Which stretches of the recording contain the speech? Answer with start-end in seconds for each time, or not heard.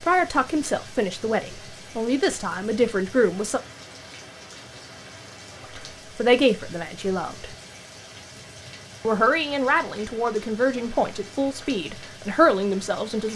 0.0-3.6, 5.8-7.5, 9.0-13.3.